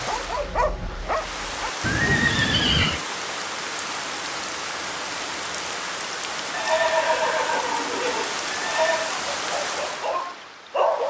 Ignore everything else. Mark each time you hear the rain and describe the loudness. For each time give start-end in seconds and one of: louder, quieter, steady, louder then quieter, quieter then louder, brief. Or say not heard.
0.0-11.0 steady.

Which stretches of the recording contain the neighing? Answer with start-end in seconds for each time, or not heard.
1.8-3.0, 6.5-9.1.